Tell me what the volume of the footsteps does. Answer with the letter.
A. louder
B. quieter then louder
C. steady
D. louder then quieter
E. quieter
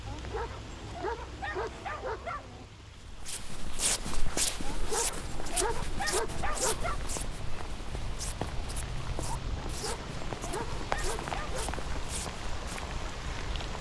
E.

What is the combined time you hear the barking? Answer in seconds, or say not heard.
7 s.